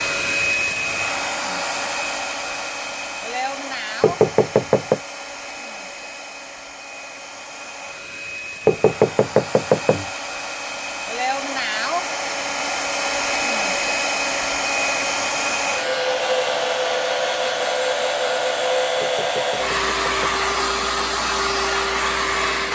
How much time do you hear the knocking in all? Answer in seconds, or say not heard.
4 s.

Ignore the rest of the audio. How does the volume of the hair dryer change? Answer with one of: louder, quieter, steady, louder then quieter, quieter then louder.
quieter then louder.